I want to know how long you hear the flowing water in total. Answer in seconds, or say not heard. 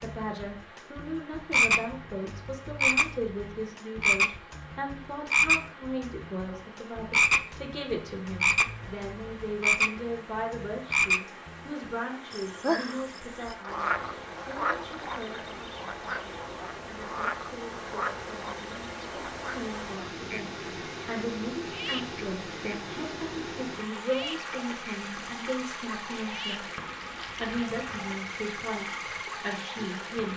30 s.